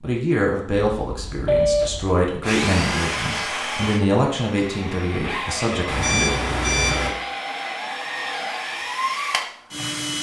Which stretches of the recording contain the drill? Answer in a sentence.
The drill can be heard from 1.8 to 10.1 s.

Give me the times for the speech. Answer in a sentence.
You can hear the speech from 0.0 to 6.2 s.